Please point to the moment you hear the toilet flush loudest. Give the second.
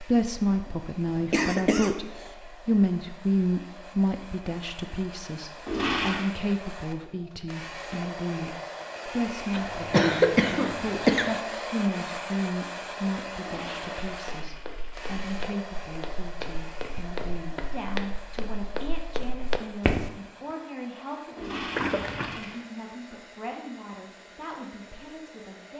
6 s.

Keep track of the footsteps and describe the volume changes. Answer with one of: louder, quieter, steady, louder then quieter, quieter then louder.
louder.